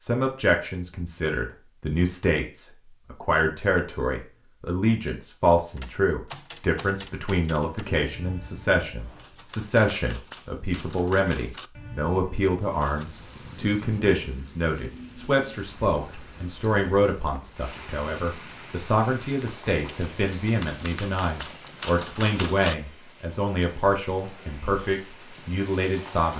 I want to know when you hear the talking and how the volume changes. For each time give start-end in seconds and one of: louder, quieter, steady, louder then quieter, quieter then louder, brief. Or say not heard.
0.0-26.3 steady.